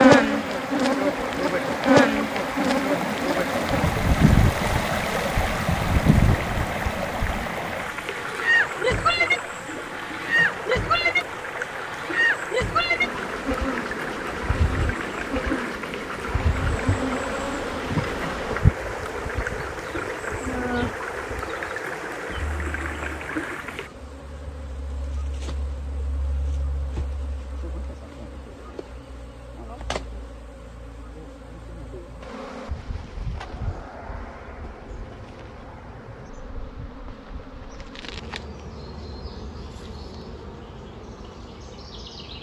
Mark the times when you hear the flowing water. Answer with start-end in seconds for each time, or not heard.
0.0-23.9.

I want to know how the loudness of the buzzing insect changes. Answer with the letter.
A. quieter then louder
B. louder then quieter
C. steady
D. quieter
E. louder
D.